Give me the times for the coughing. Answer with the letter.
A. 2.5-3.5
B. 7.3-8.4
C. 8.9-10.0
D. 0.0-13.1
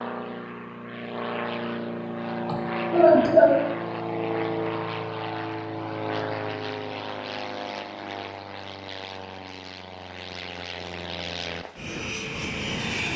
A.